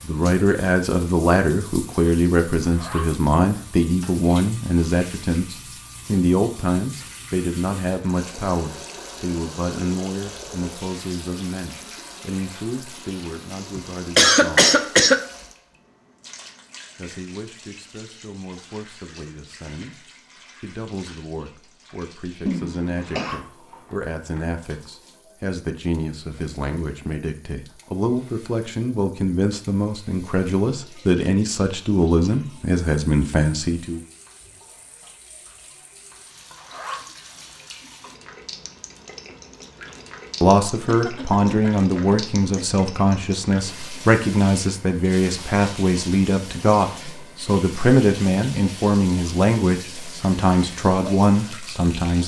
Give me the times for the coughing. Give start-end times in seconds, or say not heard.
13.8-15.2, 22.4-23.4, 40.9-42.8.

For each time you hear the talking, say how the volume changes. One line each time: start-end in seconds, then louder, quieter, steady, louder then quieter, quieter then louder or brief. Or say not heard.
0.0-14.7 quieter
16.9-34.0 louder
40.4-52.2 steady.